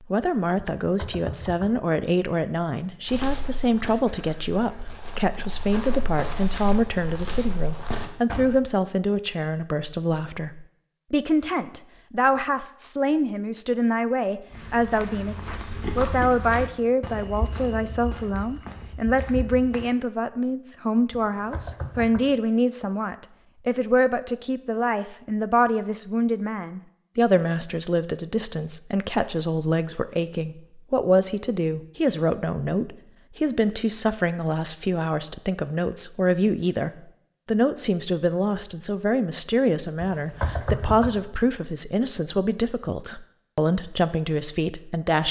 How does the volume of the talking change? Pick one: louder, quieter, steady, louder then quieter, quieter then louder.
steady.